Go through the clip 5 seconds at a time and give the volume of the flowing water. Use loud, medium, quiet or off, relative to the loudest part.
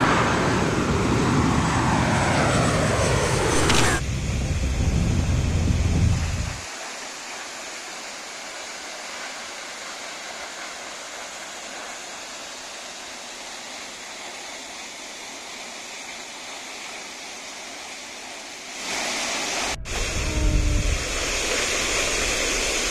medium, medium, medium, medium, loud.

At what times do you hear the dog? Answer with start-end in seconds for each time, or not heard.
not heard.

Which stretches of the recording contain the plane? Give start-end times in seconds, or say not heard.
0.0-6.6, 19.6-22.8.